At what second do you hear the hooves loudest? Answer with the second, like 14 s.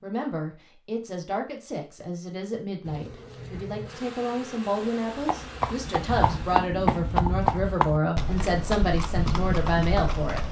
7 s.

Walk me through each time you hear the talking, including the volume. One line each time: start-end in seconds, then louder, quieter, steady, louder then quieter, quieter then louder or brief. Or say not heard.
0.0-10.4 louder.